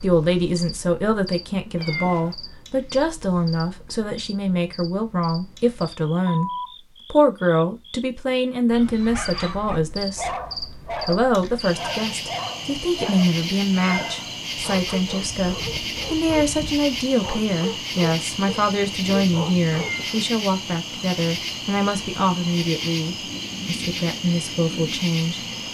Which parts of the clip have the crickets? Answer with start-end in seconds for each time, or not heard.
0.0-25.7.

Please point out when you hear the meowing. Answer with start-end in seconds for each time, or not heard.
1.8-2.4, 13.8-14.3, 19.7-20.3.